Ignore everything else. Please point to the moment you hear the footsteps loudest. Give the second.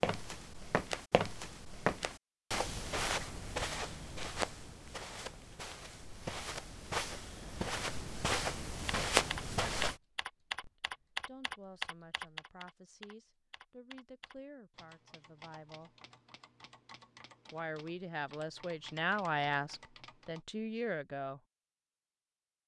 9 s.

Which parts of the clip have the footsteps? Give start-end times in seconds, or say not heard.
0.0-9.9.